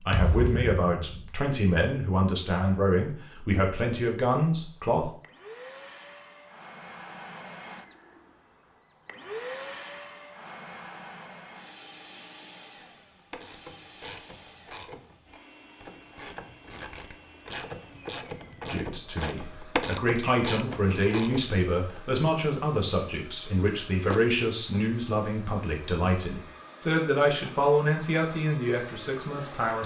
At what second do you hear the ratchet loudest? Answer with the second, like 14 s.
20 s.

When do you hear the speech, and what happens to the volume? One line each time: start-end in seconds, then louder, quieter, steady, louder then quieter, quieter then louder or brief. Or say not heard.
0.0-5.1 steady
18.7-29.8 steady.